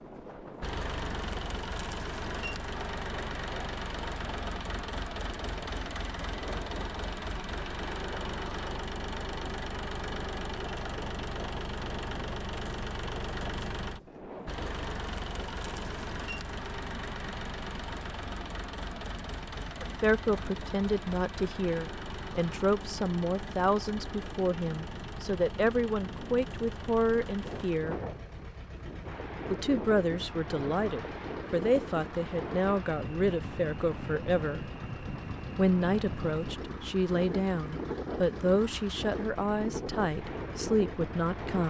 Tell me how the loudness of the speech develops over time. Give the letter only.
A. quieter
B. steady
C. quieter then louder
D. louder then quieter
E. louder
B.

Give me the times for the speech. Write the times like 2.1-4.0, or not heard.
19.8-27.9, 29.5-34.6, 35.5-41.6.